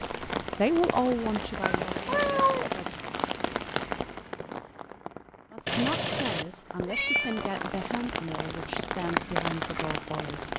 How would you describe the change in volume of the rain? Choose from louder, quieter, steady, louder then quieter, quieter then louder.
quieter then louder.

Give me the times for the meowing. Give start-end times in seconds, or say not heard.
1.6-2.7, 5.7-7.6.